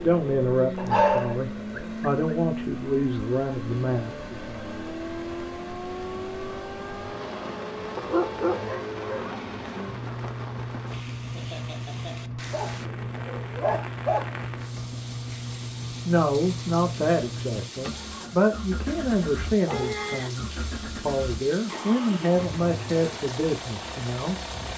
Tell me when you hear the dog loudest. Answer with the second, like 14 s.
1 s.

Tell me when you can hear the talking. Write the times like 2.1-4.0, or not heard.
0.0-4.3, 16.1-24.4.